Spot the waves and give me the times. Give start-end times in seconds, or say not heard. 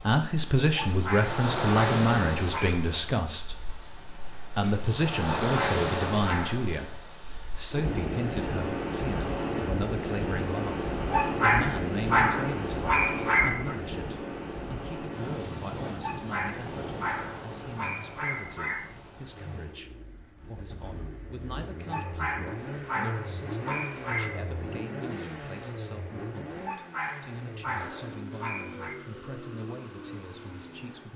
0.0-19.8.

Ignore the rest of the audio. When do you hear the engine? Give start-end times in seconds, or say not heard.
19.4-31.1.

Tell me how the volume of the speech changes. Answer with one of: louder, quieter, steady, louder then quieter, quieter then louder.
quieter.